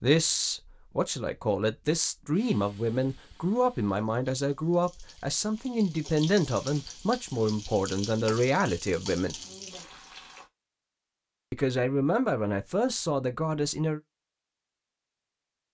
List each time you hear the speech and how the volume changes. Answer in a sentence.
The speech can be heard from 0.0 to 9.3 s, at a steady volume; and briefly from 11.5 to 14.0 s.